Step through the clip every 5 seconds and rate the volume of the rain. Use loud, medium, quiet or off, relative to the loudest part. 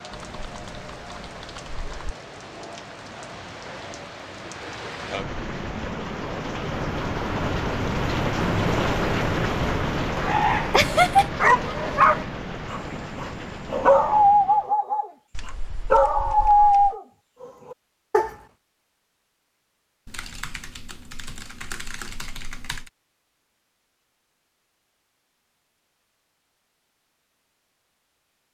quiet, loud, medium, off, off, off.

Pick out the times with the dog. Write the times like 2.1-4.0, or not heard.
10.2-18.4.